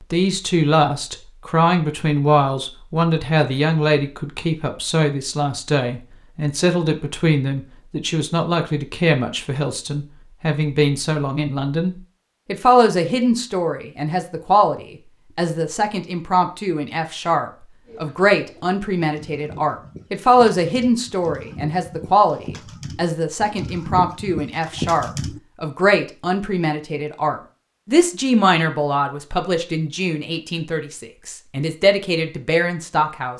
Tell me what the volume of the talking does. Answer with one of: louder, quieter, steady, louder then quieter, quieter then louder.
steady.